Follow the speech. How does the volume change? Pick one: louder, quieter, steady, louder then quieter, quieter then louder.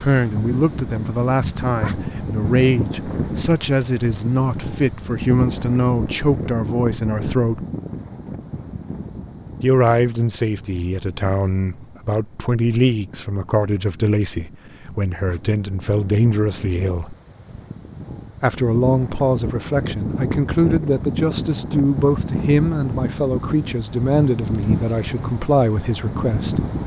steady.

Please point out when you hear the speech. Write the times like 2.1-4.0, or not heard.
0.0-7.7, 9.6-17.1, 18.4-26.6.